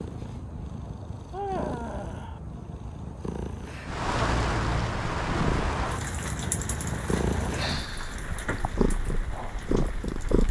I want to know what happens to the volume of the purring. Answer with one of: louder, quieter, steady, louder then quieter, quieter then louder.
louder.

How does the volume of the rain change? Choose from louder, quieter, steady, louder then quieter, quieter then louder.
quieter.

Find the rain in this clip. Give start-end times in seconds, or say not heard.
3.9-10.4.